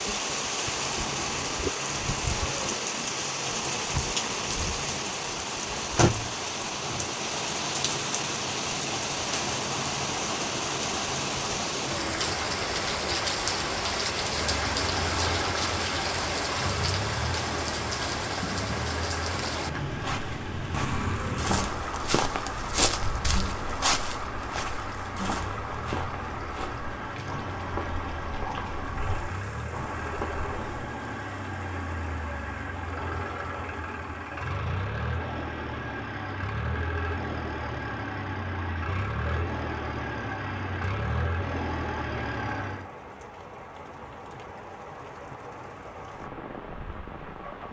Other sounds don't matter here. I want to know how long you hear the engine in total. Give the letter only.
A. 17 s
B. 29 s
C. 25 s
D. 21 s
B.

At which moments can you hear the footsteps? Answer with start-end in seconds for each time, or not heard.
19.9-30.8.